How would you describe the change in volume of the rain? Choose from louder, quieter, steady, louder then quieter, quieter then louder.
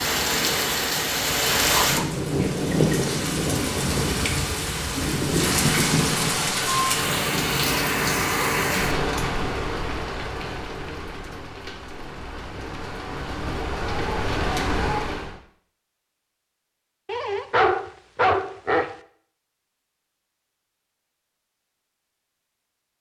quieter.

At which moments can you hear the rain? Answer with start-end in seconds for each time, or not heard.
0.0-15.3.